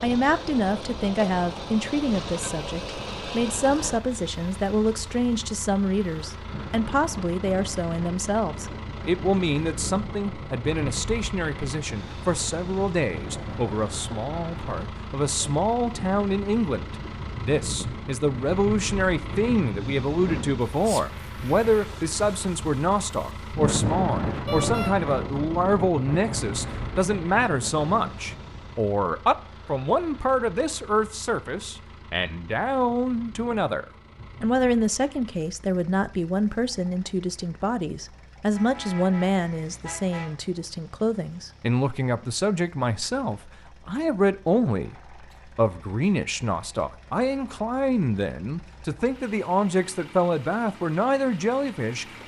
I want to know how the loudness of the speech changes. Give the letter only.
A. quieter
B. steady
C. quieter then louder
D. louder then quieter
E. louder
B.